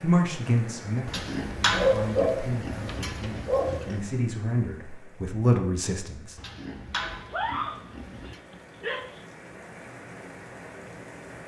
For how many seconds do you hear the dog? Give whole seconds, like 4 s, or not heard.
4 s.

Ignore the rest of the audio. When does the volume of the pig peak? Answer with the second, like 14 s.
2 s.